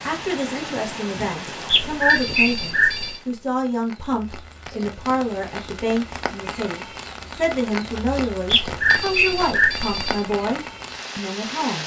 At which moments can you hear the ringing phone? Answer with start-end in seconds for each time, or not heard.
1.6-3.2, 8.4-10.2.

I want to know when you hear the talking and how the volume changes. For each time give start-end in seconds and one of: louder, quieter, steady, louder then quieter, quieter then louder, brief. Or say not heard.
0.0-11.8 steady.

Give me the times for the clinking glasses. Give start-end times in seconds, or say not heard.
not heard.